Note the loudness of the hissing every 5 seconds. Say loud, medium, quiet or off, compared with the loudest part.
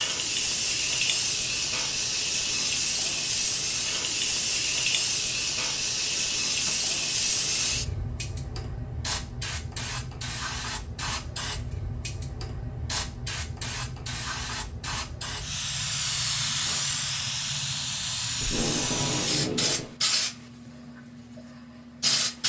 loud, loud, medium, loud, loud.